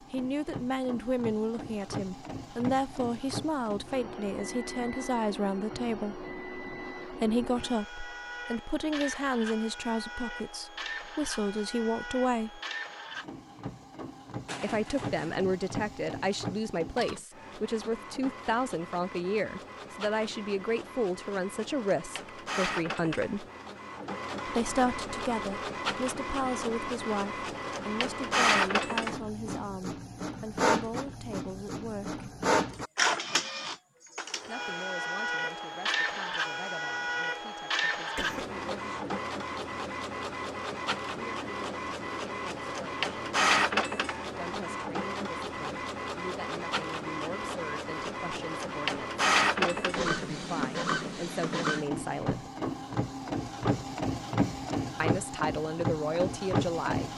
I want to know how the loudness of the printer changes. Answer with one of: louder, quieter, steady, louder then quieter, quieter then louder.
louder.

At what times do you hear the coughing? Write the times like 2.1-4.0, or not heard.
14.4-15.3, 38.1-38.6.